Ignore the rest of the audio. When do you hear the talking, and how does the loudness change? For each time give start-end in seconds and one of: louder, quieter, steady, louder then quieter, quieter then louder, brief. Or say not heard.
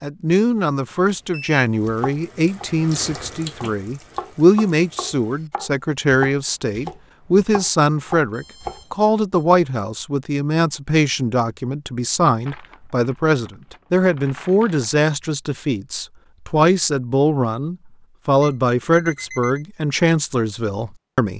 0.0-21.3 steady.